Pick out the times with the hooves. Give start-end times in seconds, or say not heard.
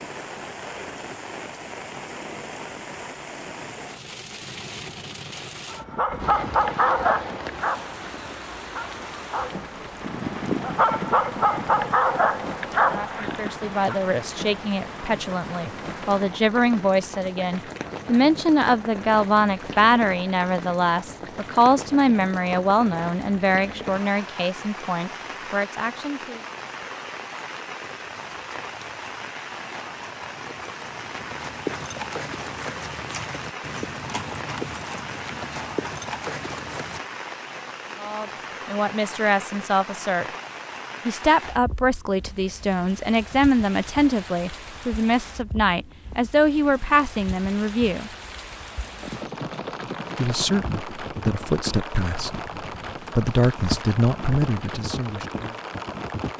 27.9-37.0, 49.0-56.3.